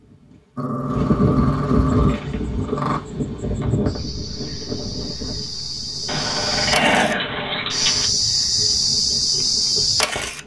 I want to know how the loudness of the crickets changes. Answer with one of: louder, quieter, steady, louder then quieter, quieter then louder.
louder.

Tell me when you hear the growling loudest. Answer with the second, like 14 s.
7 s.